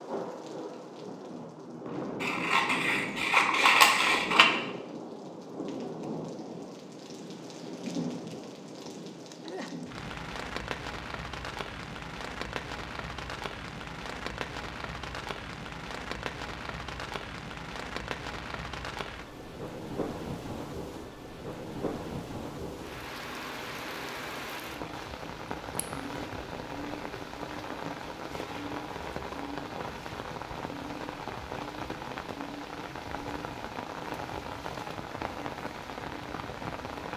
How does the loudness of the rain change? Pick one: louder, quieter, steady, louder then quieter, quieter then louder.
steady.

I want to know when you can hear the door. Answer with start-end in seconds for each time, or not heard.
not heard.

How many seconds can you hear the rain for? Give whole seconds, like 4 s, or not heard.
37 s.